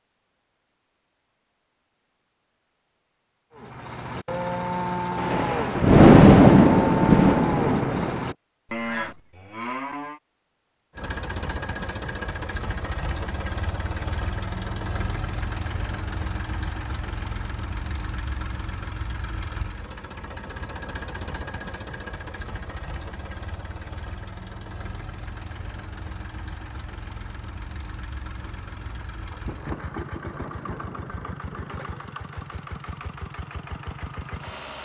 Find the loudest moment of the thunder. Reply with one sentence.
The volume of the thunder peaks at 6 seconds.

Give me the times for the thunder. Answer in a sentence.
You can hear the thunder from 5.2 to 8.2 s and from 28.4 to 32.4 s.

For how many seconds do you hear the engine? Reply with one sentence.
The engine can be heard for 24 seconds in total.